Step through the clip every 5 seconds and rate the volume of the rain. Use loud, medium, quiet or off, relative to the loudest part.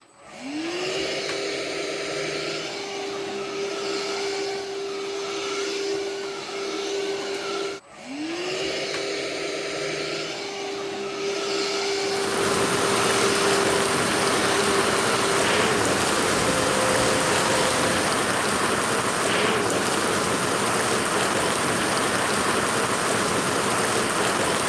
off, off, loud, loud, loud.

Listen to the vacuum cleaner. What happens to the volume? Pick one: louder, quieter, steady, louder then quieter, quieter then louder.
steady.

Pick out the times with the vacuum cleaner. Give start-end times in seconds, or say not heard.
0.0-18.1.